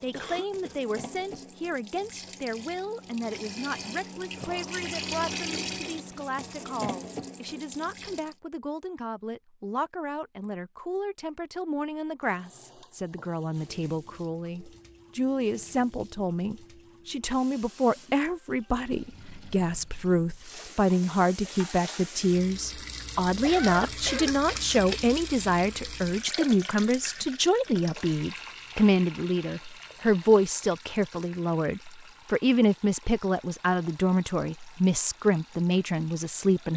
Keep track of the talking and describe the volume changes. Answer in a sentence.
The volume of the talking goes up.